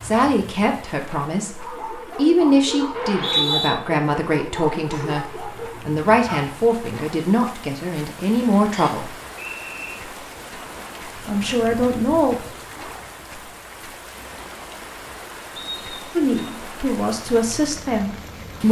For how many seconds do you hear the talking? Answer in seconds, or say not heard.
13 s.